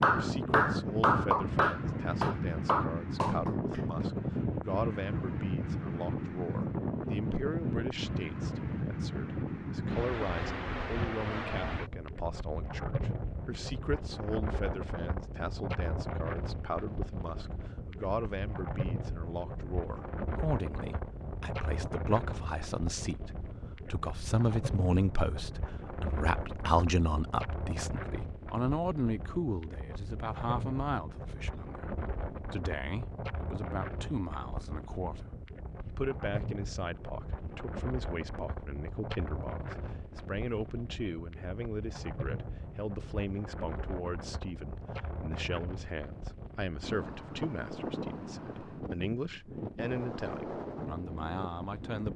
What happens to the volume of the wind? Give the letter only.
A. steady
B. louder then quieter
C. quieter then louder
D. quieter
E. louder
D.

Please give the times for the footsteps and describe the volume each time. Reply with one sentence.
The footsteps can't be heard in this clip.